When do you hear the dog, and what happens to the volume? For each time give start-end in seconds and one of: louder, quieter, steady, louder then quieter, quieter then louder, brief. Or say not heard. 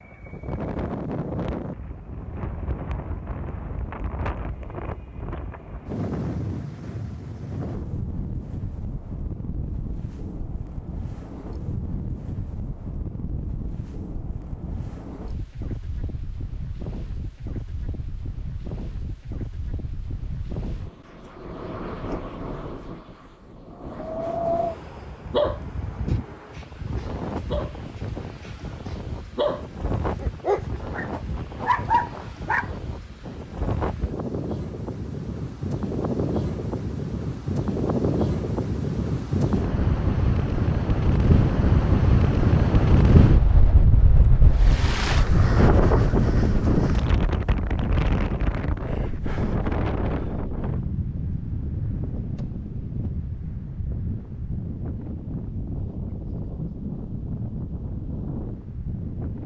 25.3-32.8 louder.